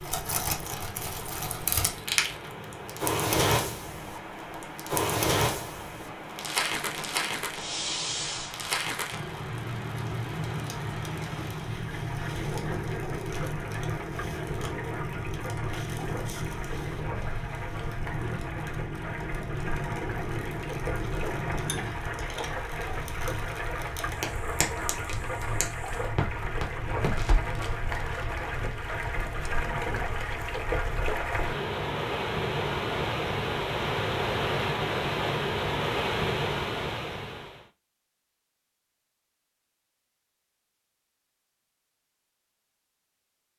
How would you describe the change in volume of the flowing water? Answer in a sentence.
The loudness of the flowing water goes up.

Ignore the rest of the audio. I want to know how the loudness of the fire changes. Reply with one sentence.
The volume of the fire goes down.